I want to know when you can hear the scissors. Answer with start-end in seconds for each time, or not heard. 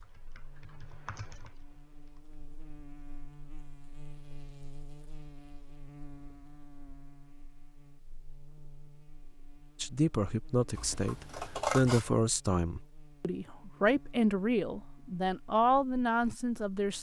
10.7-12.1.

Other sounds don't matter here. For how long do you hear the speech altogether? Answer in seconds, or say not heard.
7 s.